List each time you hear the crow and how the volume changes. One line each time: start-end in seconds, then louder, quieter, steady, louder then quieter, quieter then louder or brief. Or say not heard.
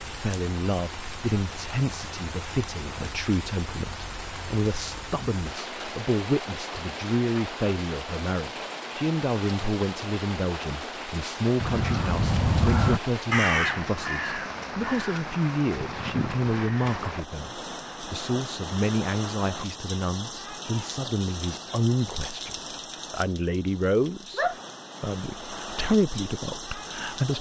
11.6-16.9 quieter.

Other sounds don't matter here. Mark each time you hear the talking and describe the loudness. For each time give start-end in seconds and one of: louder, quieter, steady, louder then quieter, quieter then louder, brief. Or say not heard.
0.1-27.3 steady.